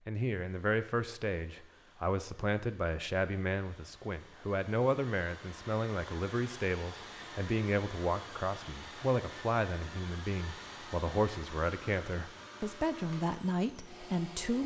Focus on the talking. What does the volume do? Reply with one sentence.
The volume of the talking stays about the same.